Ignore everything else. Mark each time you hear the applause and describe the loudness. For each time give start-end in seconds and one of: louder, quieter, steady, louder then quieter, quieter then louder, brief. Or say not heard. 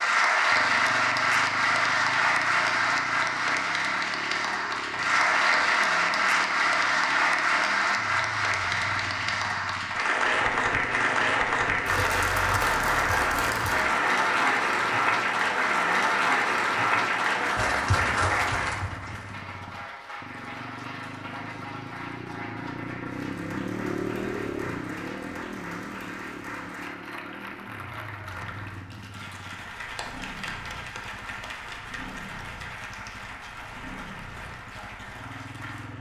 0.0-35.9 quieter.